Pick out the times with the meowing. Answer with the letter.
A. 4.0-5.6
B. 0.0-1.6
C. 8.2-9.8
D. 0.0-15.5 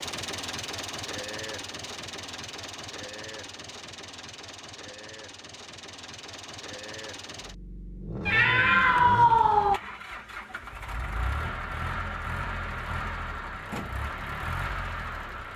C.